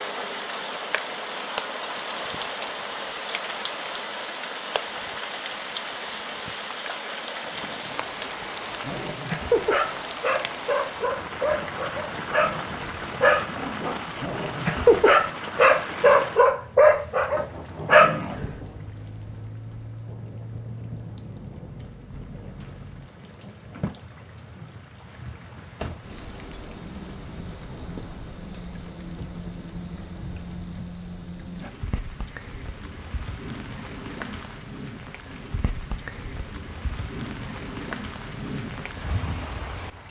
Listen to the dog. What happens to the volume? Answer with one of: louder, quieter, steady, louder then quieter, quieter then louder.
louder.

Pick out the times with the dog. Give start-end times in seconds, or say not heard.
8.8-18.6.